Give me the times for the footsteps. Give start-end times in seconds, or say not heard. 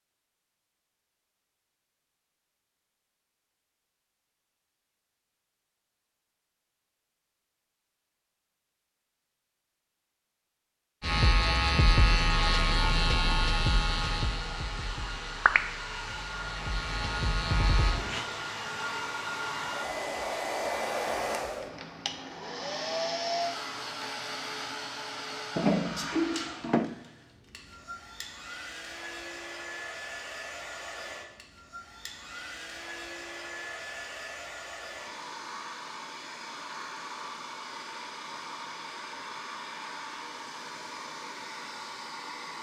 not heard.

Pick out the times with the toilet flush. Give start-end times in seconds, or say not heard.
25.6-26.9.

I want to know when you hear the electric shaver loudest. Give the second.
12 s.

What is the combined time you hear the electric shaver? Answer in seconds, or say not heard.
7 s.